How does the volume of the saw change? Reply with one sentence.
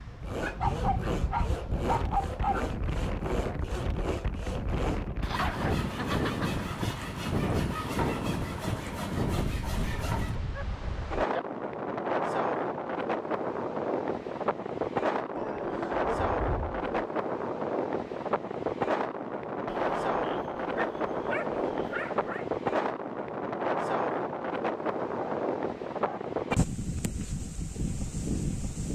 The volume of the saw stays about the same.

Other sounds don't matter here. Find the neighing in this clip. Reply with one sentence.
You can't hear the neighing here.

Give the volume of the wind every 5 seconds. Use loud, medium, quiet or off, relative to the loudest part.
medium, loud, loud, loud, loud, loud.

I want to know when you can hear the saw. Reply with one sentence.
You can hear the saw from 0.1 to 10.3 s.